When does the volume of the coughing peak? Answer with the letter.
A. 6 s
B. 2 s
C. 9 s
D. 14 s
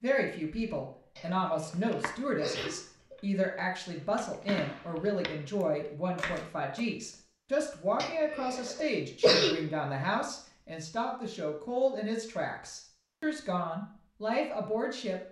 C.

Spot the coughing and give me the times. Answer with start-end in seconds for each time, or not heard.
1.1-3.1, 8.0-9.6.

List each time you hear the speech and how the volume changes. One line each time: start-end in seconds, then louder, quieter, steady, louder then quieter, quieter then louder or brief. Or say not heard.
0.0-15.2 steady.